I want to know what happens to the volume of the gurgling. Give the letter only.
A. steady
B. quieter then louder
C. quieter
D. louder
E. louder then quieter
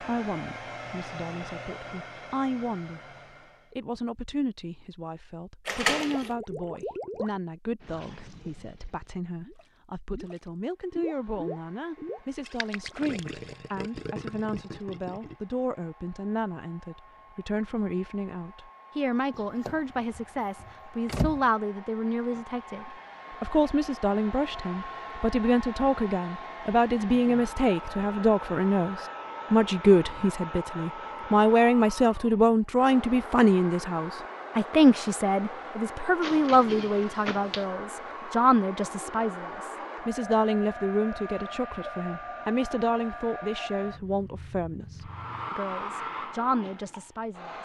B.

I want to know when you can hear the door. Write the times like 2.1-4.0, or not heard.
5.7-6.3, 19.3-21.4, 36.2-37.6.